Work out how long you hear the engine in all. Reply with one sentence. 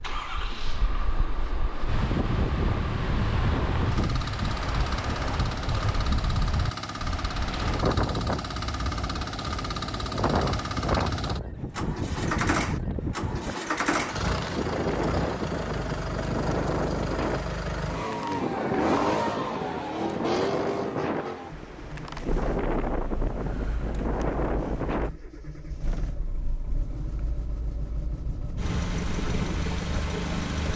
You can hear the engine for 31 seconds altogether.